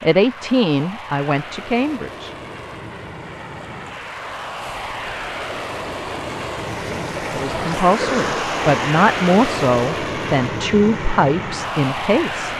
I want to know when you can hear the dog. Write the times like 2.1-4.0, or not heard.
not heard.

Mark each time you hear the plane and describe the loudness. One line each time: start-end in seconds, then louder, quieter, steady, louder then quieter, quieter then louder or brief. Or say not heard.
0.0-12.5 louder.